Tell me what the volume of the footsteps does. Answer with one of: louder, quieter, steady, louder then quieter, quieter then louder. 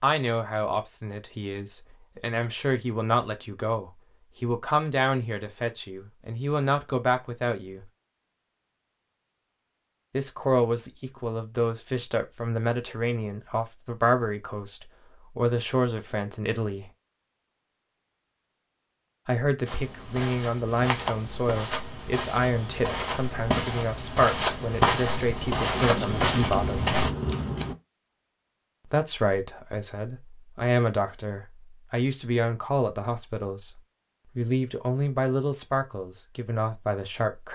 louder.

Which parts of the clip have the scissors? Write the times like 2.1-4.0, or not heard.
25.7-27.8.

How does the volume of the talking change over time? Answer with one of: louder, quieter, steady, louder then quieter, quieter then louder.
steady.